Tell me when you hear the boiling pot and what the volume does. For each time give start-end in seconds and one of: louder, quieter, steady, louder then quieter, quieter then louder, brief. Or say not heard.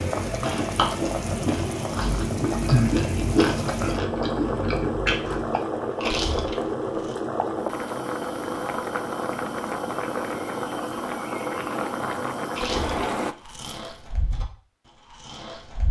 0.0-13.3 steady.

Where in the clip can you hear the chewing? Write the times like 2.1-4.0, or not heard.
0.0-7.2, 12.6-15.8.